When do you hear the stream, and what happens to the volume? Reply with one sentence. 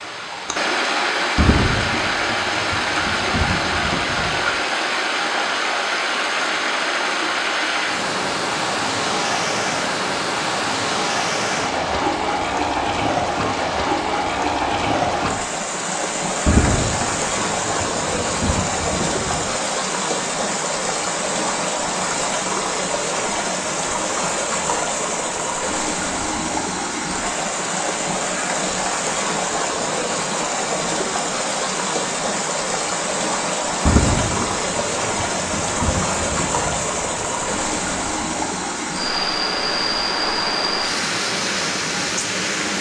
You can hear the stream from 0.0 to 42.7 s, at a steady volume.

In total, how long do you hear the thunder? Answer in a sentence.
You can hear the thunder for 10 seconds altogether.